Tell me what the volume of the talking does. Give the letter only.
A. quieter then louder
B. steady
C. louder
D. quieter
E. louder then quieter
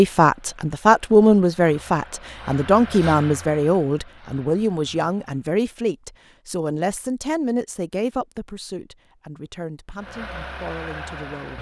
D.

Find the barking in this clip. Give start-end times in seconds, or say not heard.
not heard.